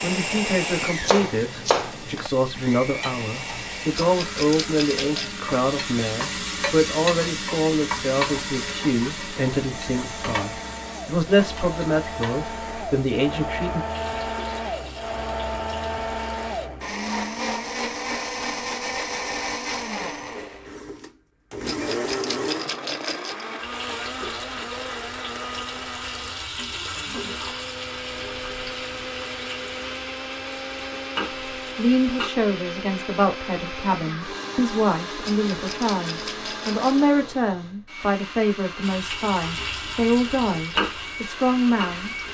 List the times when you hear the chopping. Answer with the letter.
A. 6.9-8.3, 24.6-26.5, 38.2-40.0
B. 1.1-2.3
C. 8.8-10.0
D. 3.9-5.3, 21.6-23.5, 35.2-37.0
B.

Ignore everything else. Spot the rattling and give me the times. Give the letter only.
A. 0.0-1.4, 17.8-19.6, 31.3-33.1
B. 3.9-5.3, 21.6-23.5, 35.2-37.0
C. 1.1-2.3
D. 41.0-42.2
B.